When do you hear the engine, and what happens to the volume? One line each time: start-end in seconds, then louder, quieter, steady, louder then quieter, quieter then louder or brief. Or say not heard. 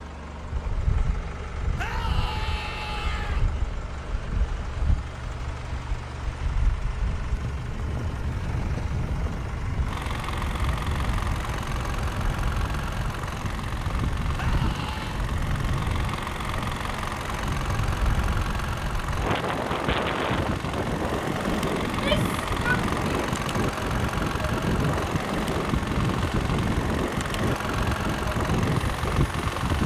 0.0-29.8 louder.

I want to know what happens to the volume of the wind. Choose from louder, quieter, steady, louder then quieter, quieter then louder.
louder.